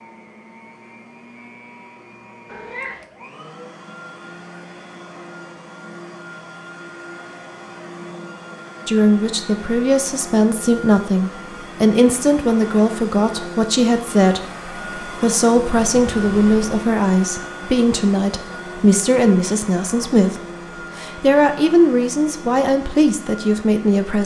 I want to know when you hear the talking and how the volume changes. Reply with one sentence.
You can hear the talking from 8.8 to 24.2 s, at a steady volume.